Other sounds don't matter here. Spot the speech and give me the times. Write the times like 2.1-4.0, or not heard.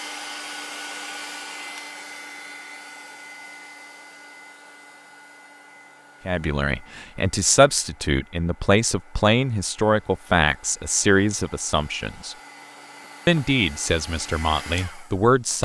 6.2-12.3, 13.2-15.5.